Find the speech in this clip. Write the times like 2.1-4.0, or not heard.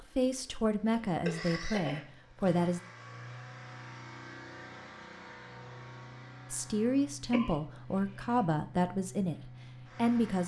0.0-2.8, 6.5-10.4.